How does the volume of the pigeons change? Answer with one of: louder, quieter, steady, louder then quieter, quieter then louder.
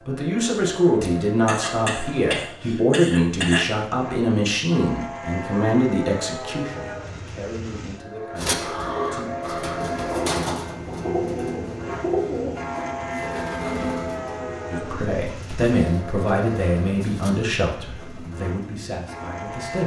quieter.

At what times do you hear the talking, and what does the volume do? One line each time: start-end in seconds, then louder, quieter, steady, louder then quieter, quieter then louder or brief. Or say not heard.
0.1-9.3 quieter
14.7-19.8 quieter.